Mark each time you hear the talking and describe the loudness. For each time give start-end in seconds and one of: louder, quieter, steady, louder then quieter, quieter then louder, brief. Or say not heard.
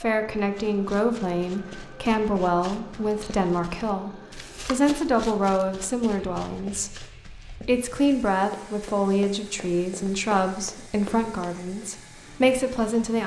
0.0-13.2 steady.